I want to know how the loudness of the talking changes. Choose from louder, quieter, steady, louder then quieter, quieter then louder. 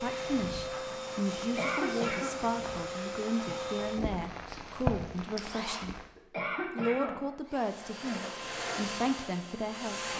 steady.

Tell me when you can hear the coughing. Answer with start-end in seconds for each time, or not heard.
1.4-2.4, 6.2-7.2.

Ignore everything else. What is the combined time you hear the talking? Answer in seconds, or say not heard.
9 s.